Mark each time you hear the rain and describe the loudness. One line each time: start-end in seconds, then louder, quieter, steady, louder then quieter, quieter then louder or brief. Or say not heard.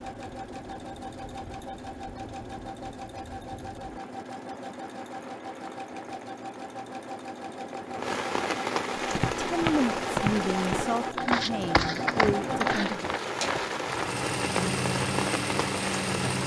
0.0-16.4 louder.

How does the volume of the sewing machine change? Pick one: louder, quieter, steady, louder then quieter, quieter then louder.
louder.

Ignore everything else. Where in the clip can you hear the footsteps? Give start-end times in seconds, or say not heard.
9.0-14.1.